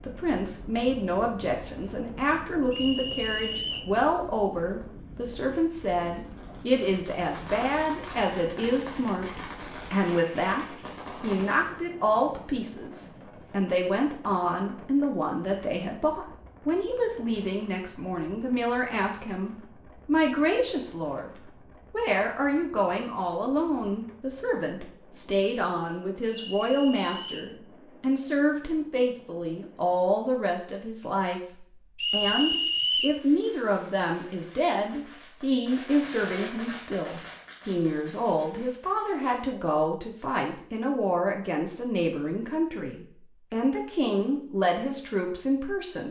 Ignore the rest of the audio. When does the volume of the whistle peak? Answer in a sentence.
The loudest moment of the whistle is at 33 seconds.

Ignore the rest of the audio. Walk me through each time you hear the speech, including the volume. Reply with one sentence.
You can hear the speech from 0.0 to 46.0 s, at a steady volume.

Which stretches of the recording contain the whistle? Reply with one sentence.
You can hear the whistle from 2.7 to 3.9 s, from 26.3 to 27.5 s and from 32.0 to 33.2 s.